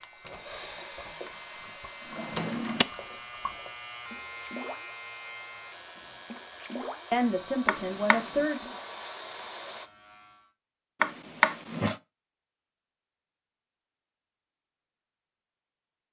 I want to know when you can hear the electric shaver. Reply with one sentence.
You can hear the electric shaver from 0.0 to 10.6 s.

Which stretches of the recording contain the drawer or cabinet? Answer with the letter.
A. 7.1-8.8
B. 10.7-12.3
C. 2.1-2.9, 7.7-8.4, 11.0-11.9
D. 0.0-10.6
C.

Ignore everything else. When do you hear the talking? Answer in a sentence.
You can hear the talking from 7.1 to 8.8 s.